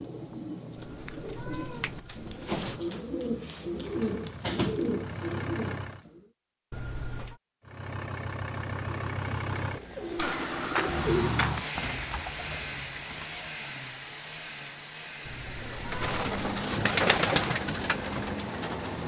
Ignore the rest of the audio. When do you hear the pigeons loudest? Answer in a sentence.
The volume of the pigeons peaks at 17 seconds.